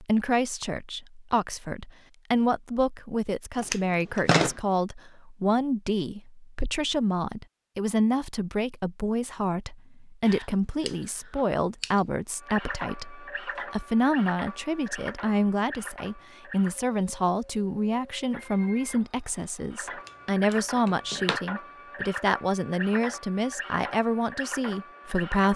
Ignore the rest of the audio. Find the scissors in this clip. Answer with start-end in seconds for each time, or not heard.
3.5-4.5, 10.2-11.9, 20.1-21.4.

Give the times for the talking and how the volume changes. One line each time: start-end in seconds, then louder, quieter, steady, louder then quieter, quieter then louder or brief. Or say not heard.
0.0-25.5 steady.